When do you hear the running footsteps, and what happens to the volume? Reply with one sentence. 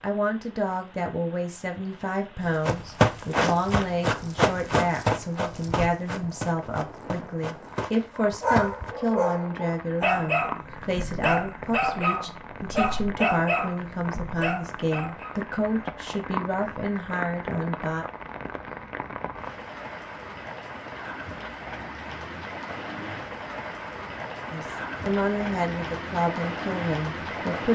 You can hear the running footsteps from 2.6 to 8.9 s, getting quieter.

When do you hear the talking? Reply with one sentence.
You can hear the talking from 0.0 to 18.1 s and from 24.5 to 27.7 s.